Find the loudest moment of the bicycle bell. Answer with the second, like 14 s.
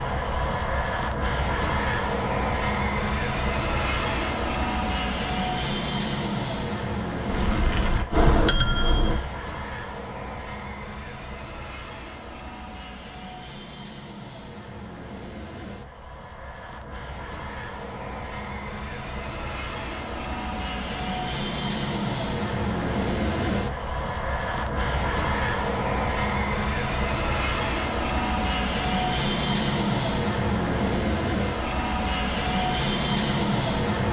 9 s.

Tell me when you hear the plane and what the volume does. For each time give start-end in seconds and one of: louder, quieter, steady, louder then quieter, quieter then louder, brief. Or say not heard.
0.0-34.0 quieter then louder.